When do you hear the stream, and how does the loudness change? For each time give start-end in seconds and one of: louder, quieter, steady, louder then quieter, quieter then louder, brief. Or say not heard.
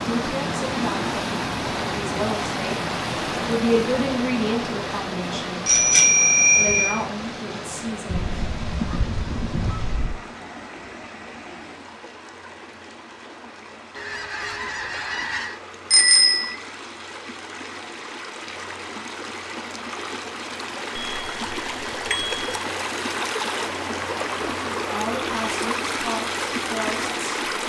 0.0-27.6 quieter then louder.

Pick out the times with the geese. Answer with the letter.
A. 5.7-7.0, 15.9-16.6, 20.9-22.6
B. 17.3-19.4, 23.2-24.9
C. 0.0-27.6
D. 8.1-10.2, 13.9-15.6
D.